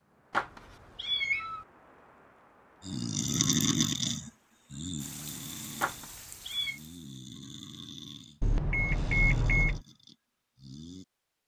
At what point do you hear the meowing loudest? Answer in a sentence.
The volume of the meowing peaks at 1 second.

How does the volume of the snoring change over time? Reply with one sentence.
The volume of the snoring goes down.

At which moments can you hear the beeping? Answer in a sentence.
The beeping can be heard from 8.4 to 9.8 s.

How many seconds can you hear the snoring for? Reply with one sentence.
The snoring can be heard for 8 seconds in total.